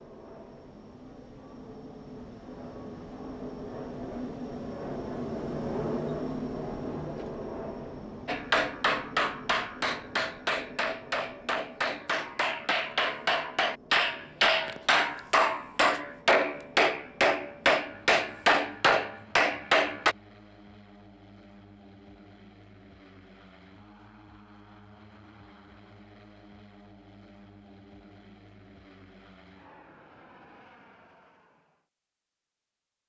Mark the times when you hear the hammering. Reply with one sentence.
You can hear the hammering from 8.2 to 20.1 s.